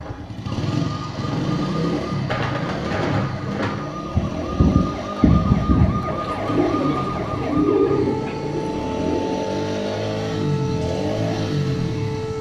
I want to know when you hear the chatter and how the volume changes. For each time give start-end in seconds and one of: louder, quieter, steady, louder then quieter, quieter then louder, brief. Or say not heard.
not heard.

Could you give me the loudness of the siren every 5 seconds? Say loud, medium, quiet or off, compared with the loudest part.
medium, loud, loud.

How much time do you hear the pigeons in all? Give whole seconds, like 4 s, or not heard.
8 s.